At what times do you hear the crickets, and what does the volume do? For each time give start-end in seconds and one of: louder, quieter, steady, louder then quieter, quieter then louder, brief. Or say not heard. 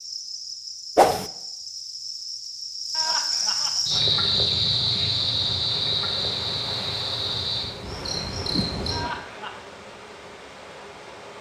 0.0-9.1 louder then quieter.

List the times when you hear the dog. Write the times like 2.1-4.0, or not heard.
not heard.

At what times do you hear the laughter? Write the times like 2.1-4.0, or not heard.
2.9-4.1, 8.9-9.6.